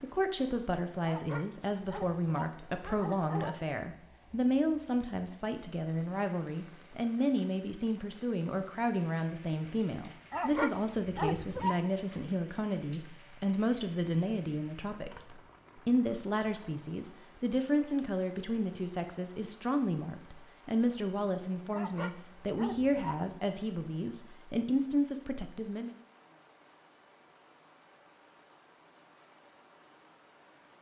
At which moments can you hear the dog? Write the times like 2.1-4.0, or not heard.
1.0-3.6, 10.3-11.8, 21.7-23.2.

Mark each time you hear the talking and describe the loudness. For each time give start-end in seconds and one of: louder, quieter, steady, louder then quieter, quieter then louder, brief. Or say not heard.
0.0-25.9 steady.